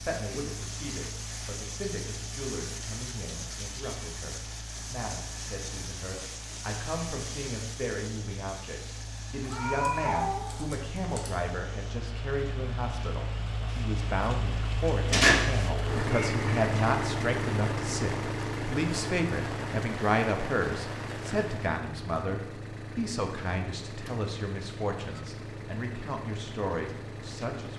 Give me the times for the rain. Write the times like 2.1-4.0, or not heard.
0.0-21.8.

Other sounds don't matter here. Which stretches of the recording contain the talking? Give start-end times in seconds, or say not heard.
0.0-27.7.